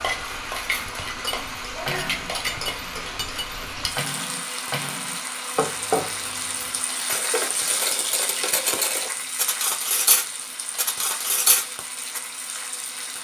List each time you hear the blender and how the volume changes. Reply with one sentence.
The blender can be heard from 0.0 to 13.1 s, getting quieter.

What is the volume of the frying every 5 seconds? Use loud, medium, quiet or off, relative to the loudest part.
loud, loud, medium.